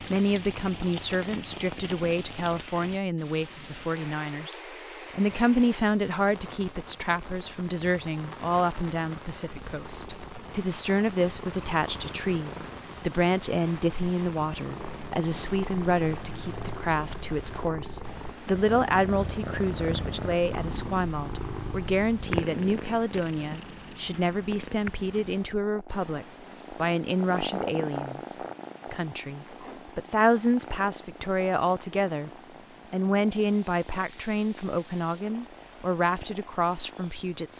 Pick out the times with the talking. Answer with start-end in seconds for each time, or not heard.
0.1-32.3, 32.9-37.5.